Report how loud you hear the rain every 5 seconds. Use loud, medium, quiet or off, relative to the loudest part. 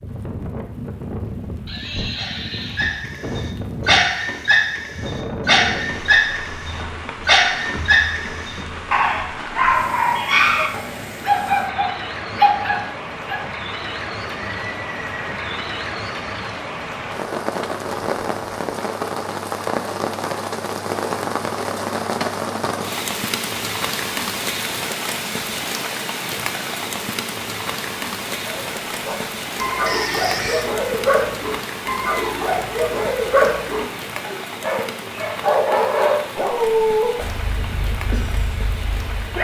medium, medium, medium, loud, loud, loud, medium, medium.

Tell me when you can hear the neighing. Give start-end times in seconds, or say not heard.
1.6-3.0, 14.2-15.7, 29.9-30.7.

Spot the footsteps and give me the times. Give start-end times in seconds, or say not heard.
not heard.